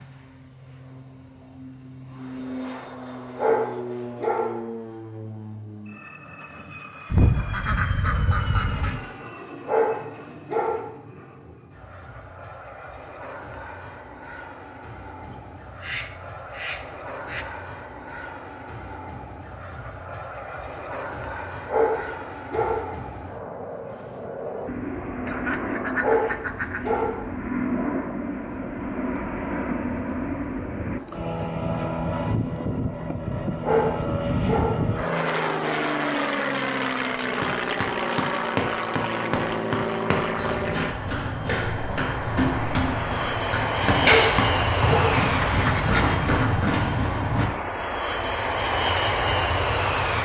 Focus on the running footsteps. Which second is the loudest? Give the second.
44 s.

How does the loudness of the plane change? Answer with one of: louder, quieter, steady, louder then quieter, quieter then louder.
louder.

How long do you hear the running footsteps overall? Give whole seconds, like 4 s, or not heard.
10 s.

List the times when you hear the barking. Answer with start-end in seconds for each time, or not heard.
3.4-4.6, 9.7-10.9, 21.6-22.9, 26.0-27.2, 33.6-34.9, 44.0-45.2.